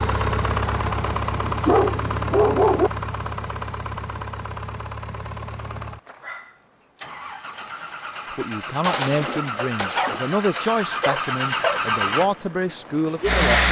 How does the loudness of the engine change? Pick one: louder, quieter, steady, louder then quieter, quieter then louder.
quieter then louder.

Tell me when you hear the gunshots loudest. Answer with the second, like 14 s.
9 s.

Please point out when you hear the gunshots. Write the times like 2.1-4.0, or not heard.
8.8-10.3.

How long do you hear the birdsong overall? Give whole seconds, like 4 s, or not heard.
not heard.